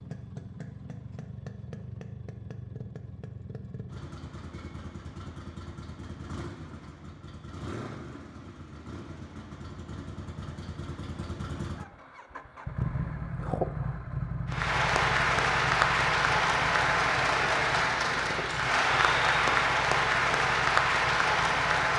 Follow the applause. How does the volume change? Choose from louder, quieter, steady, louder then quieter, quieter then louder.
steady.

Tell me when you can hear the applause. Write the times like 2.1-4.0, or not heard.
14.4-21.9.